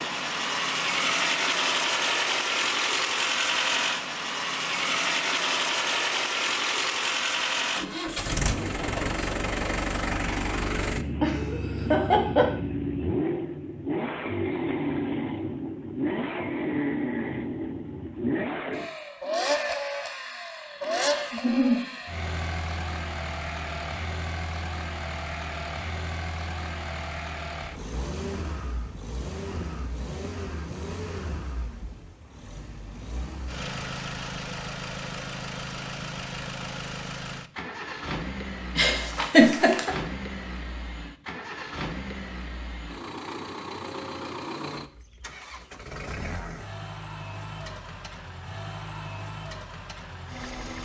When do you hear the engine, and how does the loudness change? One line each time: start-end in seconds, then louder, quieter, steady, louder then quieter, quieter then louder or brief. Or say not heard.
0.0-50.7 quieter.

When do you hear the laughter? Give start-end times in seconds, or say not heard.
11.2-12.5, 21.3-21.8, 38.8-39.9.